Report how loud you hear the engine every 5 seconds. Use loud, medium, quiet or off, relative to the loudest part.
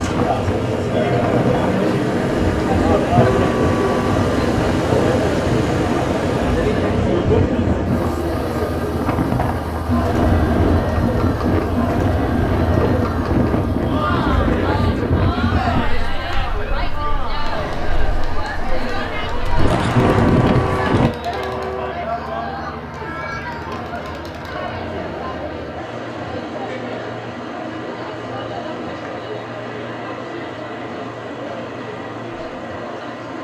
loud, loud, medium, medium, medium, medium, medium.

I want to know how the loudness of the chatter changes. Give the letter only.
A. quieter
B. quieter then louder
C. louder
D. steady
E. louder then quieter
A.